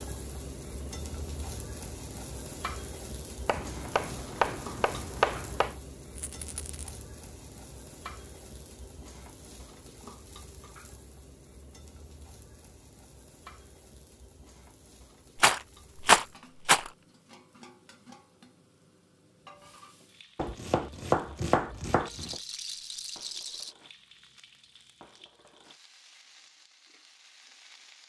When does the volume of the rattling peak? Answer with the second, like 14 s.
16 s.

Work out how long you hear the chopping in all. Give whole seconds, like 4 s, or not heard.
4 s.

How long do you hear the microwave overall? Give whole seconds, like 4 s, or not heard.
not heard.